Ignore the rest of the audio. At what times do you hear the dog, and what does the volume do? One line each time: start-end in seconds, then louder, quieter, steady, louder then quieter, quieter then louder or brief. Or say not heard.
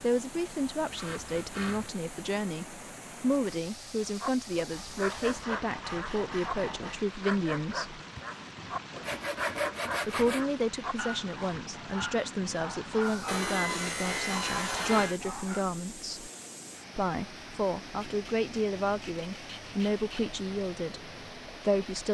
4.2-15.7 steady.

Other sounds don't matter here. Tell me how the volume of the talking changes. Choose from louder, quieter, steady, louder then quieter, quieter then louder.
steady.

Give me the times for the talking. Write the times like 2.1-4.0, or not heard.
0.0-8.0, 10.1-16.3, 16.9-22.0.